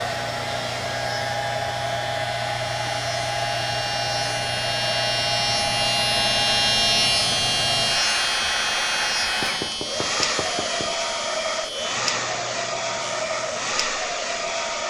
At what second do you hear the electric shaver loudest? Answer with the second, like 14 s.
7 s.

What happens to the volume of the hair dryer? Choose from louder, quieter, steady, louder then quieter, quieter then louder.
steady.